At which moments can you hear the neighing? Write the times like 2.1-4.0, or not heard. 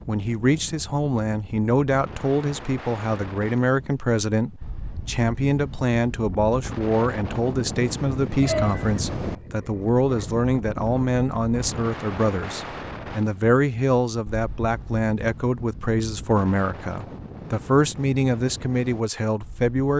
8.4-10.3.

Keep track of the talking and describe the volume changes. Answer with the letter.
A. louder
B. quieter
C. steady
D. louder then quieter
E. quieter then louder
C.